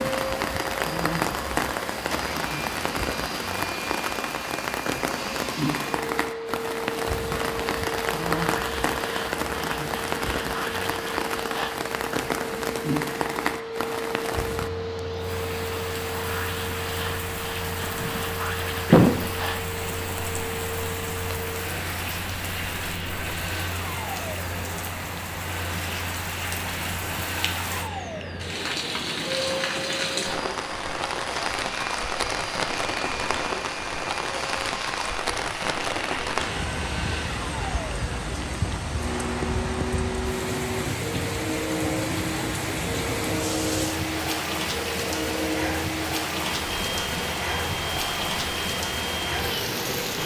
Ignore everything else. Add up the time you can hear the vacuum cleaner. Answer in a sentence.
The vacuum cleaner can be heard for 50 seconds in total.